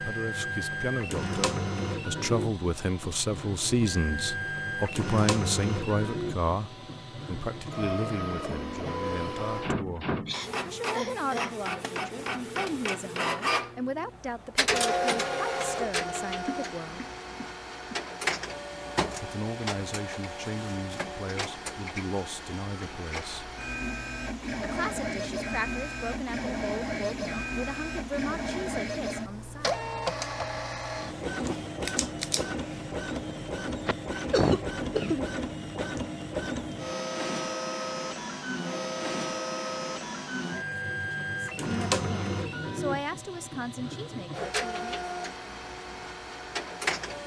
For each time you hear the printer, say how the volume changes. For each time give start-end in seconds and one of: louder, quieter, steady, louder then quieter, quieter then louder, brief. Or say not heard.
0.0-47.2 steady.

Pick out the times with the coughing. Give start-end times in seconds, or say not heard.
10.2-11.7, 16.4-18.0, 33.8-35.3.